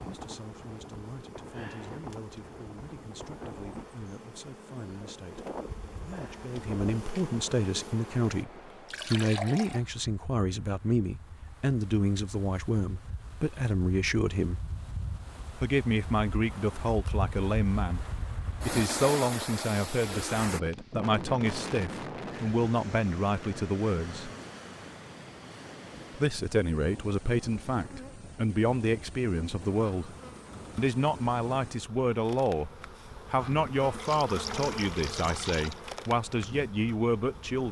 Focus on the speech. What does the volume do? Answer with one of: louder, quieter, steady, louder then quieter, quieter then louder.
louder.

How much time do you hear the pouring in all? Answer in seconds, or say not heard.
3 s.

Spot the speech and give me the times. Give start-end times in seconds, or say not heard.
0.1-14.7, 15.6-24.3, 26.1-30.1, 30.8-37.6.